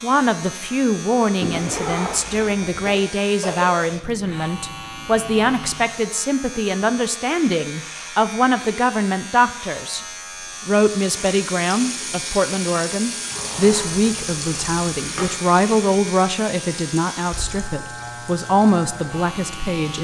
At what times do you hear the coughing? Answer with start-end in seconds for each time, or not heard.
2.9-3.7.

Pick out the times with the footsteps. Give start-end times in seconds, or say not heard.
not heard.